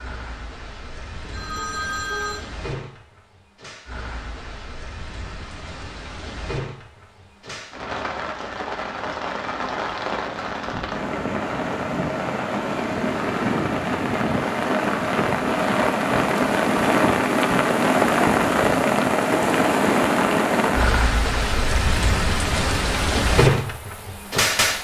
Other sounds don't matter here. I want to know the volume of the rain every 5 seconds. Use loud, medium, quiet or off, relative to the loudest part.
quiet, quiet, medium, loud, loud.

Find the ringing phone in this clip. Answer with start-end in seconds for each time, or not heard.
1.2-2.5.